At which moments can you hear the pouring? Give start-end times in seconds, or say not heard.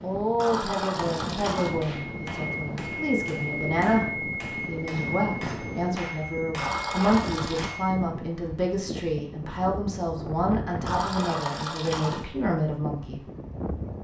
0.3-1.8, 6.5-7.7, 10.8-12.2.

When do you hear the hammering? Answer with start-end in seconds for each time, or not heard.
1.6-8.1.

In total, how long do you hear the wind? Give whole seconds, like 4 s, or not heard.
14 s.